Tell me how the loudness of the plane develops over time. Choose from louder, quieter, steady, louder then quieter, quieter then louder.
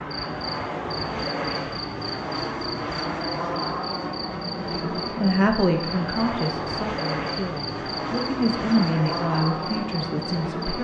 steady.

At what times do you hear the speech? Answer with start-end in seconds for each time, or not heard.
4.7-10.7.